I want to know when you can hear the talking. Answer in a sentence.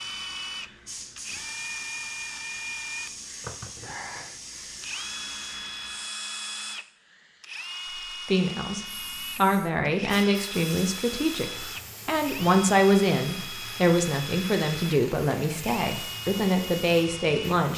You can hear the talking from 8.1 to 17.7 s.